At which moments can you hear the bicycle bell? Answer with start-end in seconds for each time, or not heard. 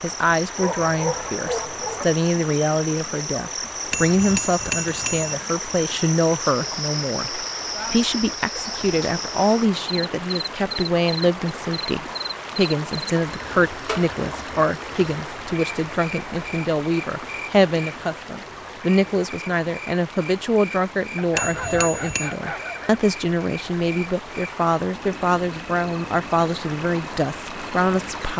3.9-5.3, 21.4-22.4.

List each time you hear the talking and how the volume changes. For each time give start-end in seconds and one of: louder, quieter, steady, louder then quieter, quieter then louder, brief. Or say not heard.
0.0-28.3 steady.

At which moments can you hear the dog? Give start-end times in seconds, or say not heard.
0.6-2.1, 21.1-23.0.